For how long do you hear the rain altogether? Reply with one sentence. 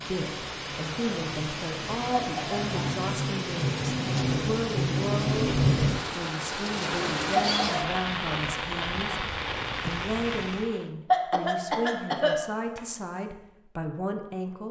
The rain can be heard for 11 seconds in total.